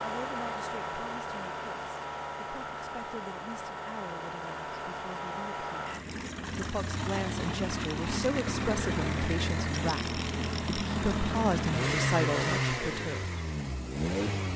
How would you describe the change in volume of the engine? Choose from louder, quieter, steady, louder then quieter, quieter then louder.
louder.